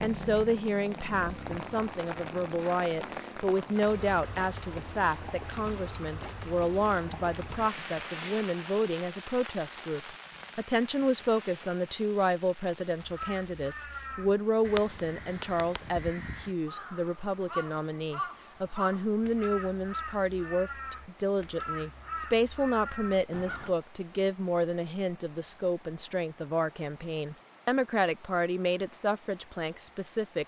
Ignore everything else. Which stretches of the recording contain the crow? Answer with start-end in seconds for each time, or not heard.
12.9-23.8.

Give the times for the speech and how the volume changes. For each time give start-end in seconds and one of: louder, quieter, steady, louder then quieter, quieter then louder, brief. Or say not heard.
0.0-30.4 steady.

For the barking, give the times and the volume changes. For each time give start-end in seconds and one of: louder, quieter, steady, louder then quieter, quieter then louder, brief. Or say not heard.
not heard.